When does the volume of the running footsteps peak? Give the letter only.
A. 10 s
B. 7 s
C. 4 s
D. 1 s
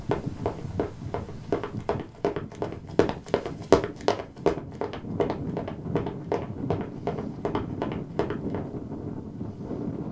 C.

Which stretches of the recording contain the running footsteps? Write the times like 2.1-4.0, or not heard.
0.0-8.6.